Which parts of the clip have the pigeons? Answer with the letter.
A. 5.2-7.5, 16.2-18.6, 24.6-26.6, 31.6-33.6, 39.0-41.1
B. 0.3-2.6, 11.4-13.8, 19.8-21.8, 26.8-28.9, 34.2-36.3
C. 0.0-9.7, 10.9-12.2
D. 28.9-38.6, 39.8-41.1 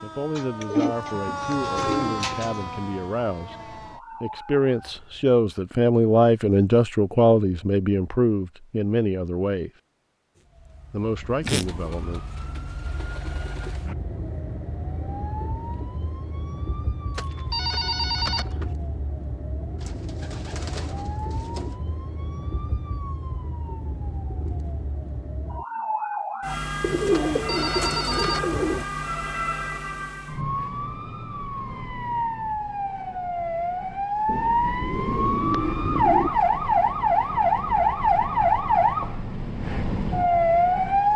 B.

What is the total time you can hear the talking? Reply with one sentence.
The talking can be heard for 11 seconds in total.